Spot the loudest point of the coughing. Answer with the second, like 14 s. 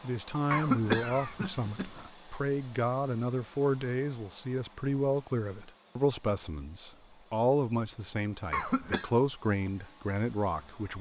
1 s.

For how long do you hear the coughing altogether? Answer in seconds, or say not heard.
2 s.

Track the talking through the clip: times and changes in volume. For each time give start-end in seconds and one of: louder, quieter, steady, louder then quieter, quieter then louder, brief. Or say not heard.
0.0-10.9 steady.